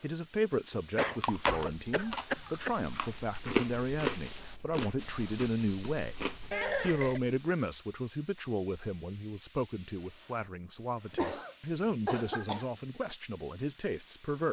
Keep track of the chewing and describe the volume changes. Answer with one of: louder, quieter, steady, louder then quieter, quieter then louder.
louder then quieter.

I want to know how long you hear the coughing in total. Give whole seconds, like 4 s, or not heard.
4 s.